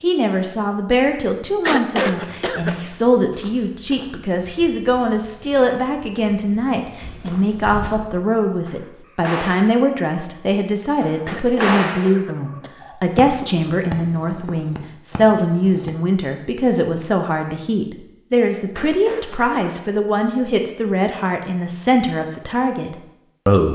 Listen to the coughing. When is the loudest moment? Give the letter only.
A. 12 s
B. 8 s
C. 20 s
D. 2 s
D.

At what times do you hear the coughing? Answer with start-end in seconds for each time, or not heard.
1.6-2.8, 11.2-12.7, 18.7-19.6.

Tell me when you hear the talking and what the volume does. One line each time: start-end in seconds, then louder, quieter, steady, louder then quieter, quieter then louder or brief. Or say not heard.
0.0-23.7 steady.